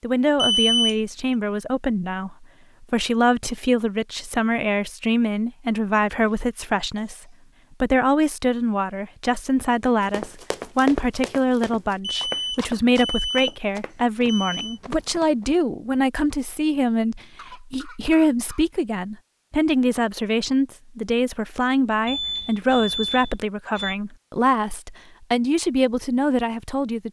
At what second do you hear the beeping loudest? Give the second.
1 s.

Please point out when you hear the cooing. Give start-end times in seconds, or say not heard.
not heard.